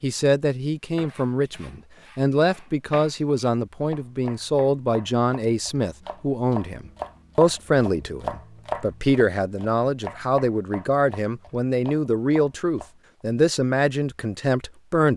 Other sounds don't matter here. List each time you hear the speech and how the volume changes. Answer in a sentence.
You can hear the speech from 0.0 to 15.1 s, at a steady volume.